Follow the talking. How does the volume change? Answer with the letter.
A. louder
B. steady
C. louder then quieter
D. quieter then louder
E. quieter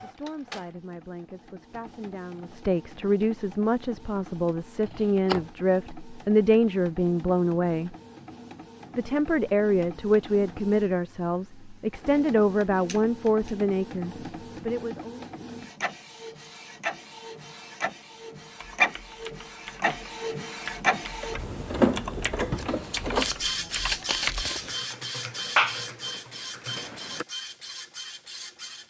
A.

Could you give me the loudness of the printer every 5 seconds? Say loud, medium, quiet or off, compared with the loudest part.
quiet, quiet, quiet, loud, loud, medium.